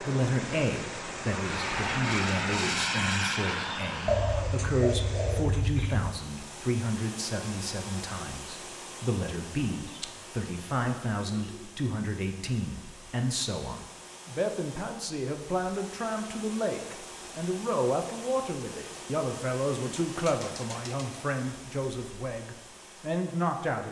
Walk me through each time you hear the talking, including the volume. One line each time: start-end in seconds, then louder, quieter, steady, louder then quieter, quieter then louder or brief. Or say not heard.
0.0-23.8 steady.